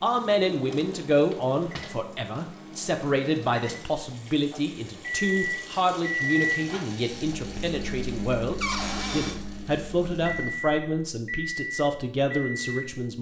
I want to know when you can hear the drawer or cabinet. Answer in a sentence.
The drawer or cabinet can be heard from 0.5 to 1.9 s and from 8.6 to 9.4 s.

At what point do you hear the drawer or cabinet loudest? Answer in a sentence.
The volume of the drawer or cabinet peaks at 9 seconds.